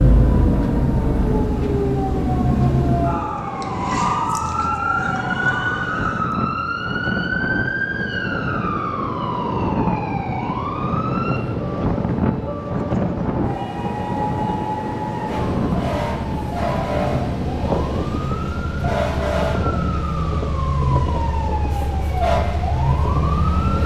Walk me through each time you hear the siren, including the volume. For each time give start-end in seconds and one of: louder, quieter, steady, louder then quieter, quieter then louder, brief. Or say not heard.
0.0-23.8 quieter then louder.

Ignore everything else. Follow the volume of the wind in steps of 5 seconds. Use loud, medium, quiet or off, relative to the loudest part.
medium, loud, loud, loud, medium.